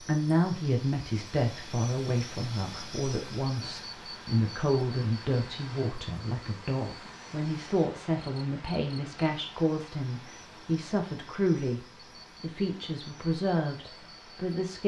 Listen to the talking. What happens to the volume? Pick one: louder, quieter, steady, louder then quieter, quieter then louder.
steady.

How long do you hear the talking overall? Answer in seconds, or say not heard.
15 s.